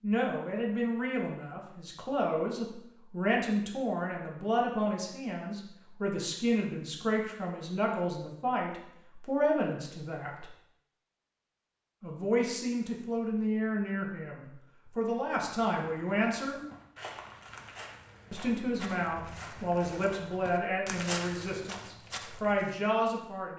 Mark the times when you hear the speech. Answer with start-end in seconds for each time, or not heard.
0.0-10.4, 12.0-16.6, 18.3-23.5.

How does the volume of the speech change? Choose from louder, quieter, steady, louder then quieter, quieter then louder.
steady.